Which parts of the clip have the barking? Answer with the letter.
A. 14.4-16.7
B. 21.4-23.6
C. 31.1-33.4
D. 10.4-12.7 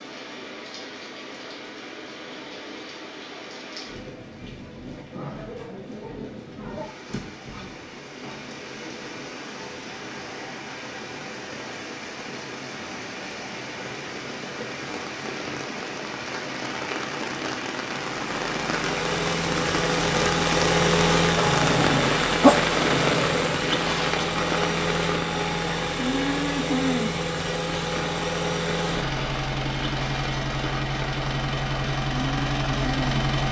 B.